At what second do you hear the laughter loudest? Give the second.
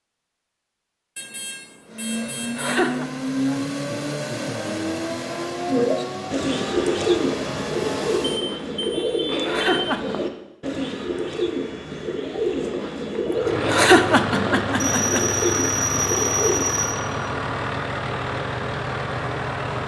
14 s.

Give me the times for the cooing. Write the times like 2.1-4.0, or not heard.
5.7-16.7.